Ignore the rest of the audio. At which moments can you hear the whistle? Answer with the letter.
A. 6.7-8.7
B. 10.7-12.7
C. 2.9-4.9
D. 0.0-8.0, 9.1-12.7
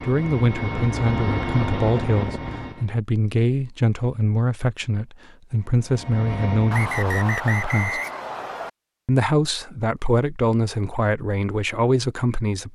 A.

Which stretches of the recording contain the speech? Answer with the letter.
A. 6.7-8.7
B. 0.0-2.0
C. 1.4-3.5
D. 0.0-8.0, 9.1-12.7
D.